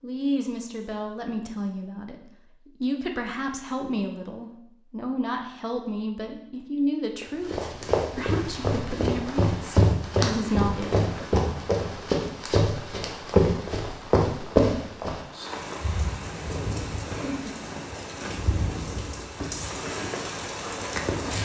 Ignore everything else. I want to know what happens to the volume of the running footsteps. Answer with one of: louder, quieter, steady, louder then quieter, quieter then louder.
louder.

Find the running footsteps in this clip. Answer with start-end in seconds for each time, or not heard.
7.2-15.8.